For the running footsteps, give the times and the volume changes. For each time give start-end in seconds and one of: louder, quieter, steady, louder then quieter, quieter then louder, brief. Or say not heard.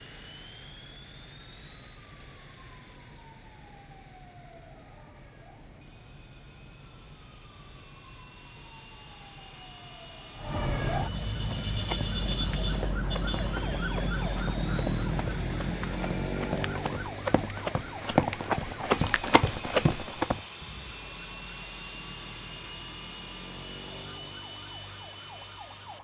11.3-20.4 louder.